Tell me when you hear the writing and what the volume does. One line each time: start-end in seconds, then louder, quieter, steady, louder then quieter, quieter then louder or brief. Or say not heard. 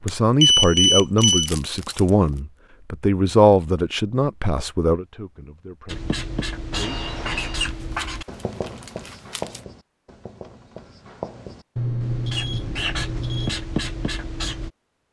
5.8-14.7 quieter then louder.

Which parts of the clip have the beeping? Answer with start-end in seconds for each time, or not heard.
0.1-1.5, 6.7-7.7, 11.8-13.6.